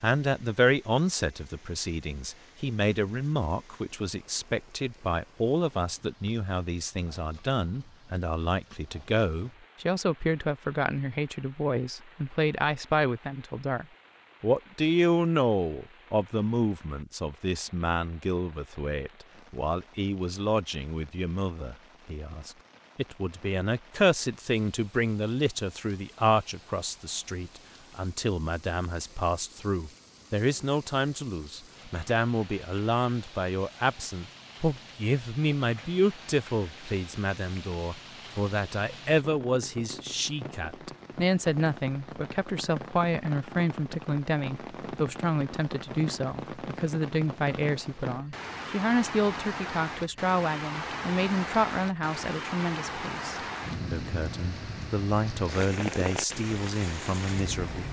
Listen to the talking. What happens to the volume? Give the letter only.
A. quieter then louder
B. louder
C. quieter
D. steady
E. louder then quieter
D.